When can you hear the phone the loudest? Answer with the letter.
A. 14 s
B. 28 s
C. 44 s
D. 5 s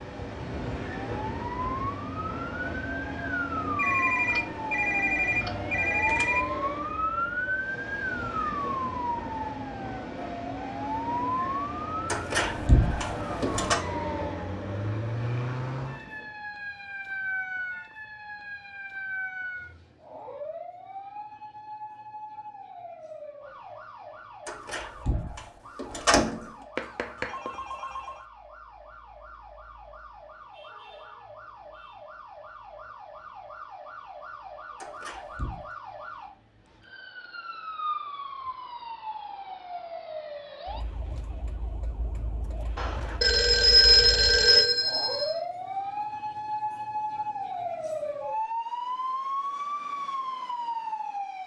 C.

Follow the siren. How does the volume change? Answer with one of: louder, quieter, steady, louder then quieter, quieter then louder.
quieter then louder.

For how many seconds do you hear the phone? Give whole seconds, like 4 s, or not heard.
7 s.